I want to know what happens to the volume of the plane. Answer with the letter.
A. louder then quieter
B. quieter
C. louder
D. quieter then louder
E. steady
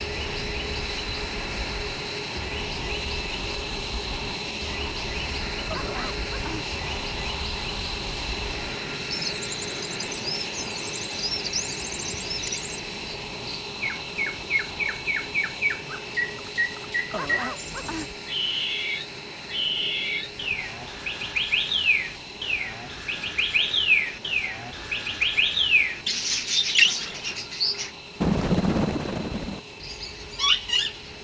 B.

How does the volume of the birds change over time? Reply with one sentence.
The volume of the birds goes up.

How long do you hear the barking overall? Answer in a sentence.
You can hear the barking for 2 seconds altogether.